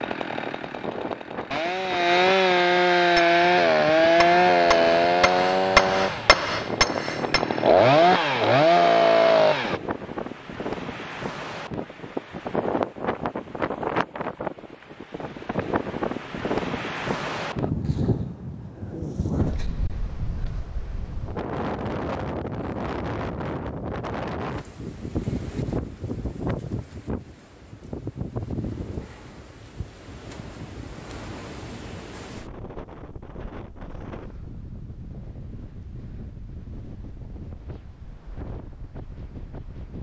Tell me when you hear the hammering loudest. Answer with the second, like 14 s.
6 s.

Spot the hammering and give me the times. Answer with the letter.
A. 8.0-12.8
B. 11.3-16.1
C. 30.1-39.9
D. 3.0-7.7
D.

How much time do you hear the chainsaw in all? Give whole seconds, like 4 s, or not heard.
10 s.